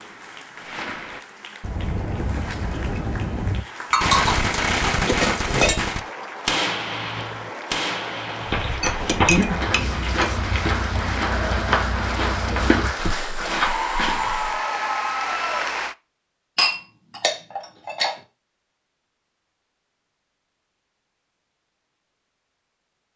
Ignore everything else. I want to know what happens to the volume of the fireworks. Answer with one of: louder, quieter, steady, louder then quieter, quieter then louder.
louder then quieter.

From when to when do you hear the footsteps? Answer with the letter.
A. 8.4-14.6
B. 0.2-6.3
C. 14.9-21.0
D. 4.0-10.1
A.